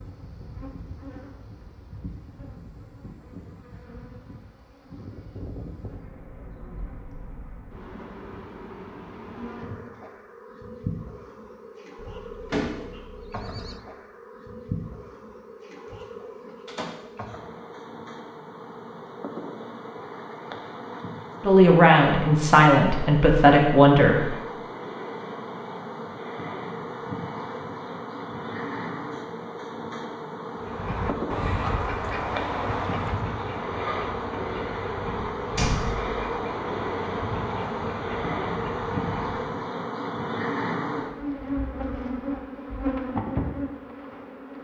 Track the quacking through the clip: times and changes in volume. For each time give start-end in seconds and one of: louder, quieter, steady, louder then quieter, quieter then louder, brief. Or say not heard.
30.6-39.4 quieter.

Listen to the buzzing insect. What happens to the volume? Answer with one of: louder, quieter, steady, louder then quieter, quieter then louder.
louder.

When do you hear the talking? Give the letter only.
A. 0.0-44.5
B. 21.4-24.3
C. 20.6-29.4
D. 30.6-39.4
B.